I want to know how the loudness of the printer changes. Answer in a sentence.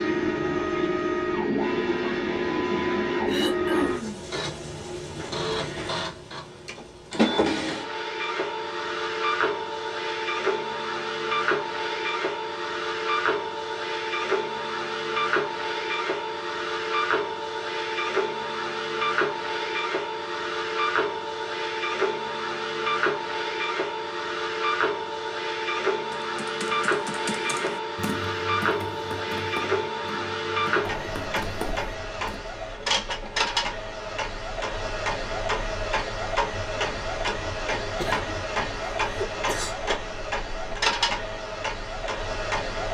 The loudness of the printer stays about the same.